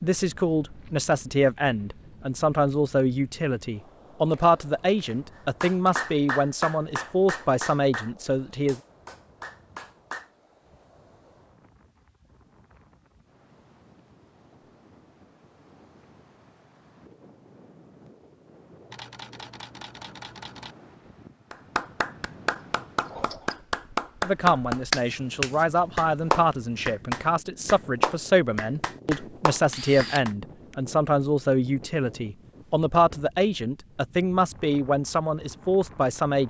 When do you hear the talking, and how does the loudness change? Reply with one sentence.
You can hear the talking from 0.0 to 8.8 s, at a steady volume; and from 24.2 to 36.4 s, at a steady volume.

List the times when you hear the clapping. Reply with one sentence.
You can hear the clapping from 5.6 to 10.2 s and from 21.5 to 30.3 s.